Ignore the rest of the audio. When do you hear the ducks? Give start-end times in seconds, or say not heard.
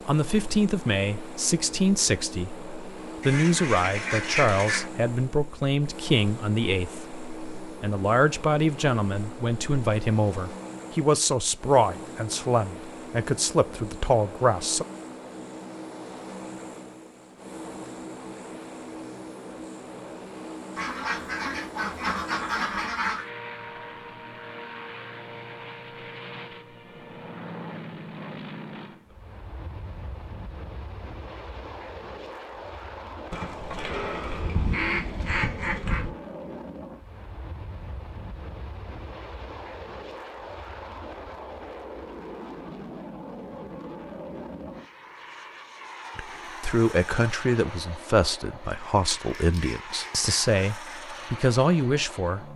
3.2-4.8, 20.8-23.2, 33.3-36.1, 49.0-51.0.